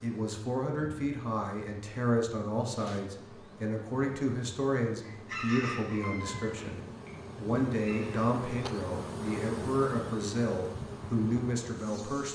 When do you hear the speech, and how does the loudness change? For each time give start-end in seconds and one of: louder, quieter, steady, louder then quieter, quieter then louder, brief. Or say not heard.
0.0-12.3 steady.